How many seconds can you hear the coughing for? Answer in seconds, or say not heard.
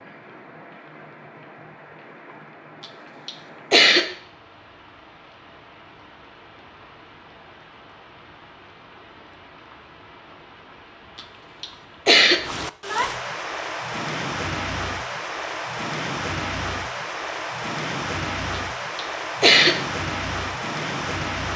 3 s.